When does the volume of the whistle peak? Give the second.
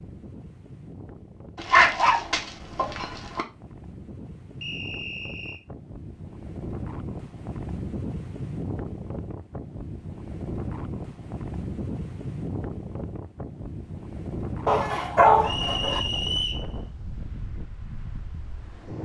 16 s.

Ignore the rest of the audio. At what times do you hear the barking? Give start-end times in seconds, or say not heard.
1.6-3.5, 14.7-16.0.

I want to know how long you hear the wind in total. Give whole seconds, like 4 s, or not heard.
19 s.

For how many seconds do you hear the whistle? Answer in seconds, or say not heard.
2 s.